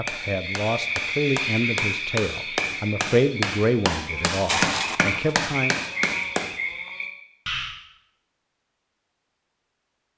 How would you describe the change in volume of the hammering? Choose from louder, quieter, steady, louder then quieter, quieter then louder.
louder.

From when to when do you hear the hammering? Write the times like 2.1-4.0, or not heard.
0.1-6.5.